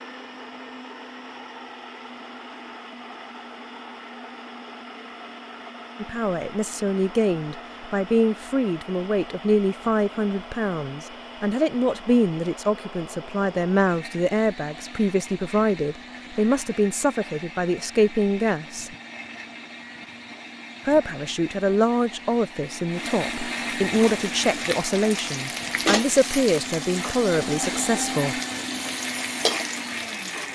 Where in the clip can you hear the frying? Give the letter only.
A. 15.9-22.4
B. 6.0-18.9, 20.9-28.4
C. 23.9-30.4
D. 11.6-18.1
C.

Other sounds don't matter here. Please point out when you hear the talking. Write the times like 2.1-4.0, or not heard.
6.0-18.9, 20.9-28.4.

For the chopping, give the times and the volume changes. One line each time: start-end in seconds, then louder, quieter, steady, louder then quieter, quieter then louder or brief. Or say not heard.
not heard.